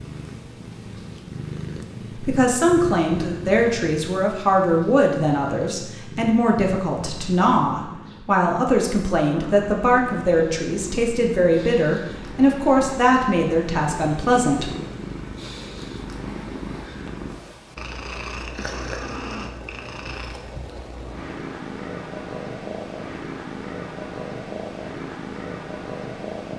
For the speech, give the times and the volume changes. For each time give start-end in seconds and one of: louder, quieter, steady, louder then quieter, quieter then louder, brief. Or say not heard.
2.1-14.7 steady.